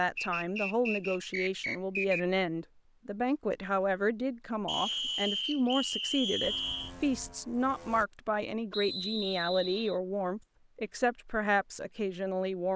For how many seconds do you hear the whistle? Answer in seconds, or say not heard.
6 s.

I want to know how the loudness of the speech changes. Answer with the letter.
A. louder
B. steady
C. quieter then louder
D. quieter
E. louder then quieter
B.